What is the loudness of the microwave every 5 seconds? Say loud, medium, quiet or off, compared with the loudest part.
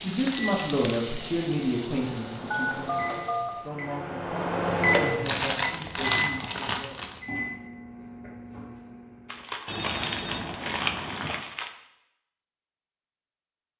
loud, loud, off.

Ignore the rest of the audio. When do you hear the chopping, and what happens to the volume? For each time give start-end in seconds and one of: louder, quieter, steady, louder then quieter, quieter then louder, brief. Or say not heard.
not heard.